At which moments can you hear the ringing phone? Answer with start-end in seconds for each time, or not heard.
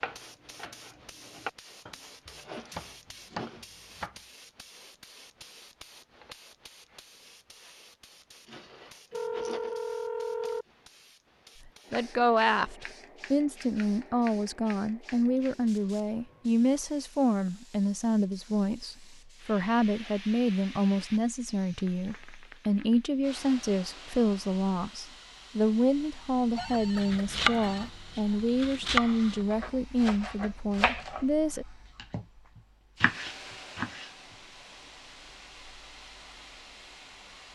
9.1-10.7, 26.6-27.9.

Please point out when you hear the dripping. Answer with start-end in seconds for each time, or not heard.
not heard.